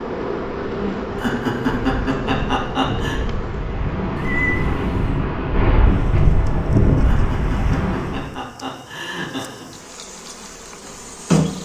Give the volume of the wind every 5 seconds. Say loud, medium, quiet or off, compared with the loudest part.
medium, loud, off.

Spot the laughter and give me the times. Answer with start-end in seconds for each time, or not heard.
1.1-3.2, 7.0-9.7.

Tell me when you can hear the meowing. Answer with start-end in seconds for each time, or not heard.
4.2-5.2.